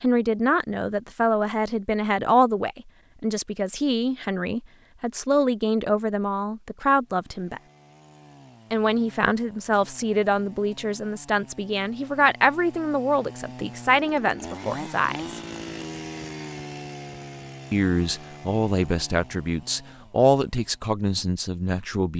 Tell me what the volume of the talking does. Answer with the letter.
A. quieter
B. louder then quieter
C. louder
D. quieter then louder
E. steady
E.